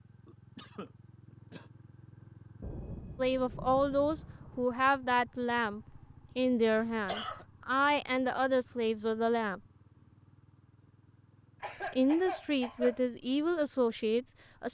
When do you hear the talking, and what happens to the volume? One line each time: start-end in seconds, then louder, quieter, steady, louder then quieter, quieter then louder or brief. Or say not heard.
3.1-9.6 steady
11.9-14.7 brief.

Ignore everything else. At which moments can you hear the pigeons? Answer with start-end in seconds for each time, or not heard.
not heard.